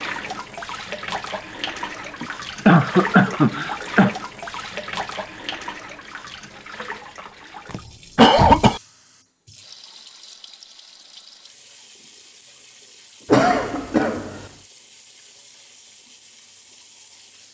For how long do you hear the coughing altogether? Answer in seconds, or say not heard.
4 s.